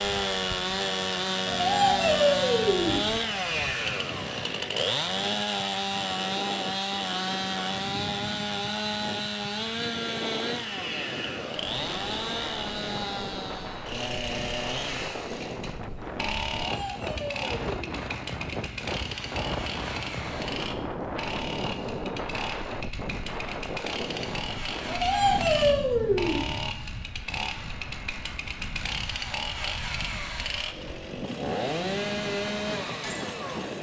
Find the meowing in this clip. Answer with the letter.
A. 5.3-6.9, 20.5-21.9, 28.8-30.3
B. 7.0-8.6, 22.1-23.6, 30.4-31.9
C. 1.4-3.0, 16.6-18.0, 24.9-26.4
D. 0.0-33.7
C.